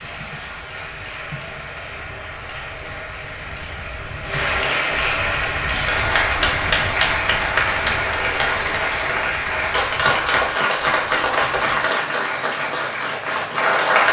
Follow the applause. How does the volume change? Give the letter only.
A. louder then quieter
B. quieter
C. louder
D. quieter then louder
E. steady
C.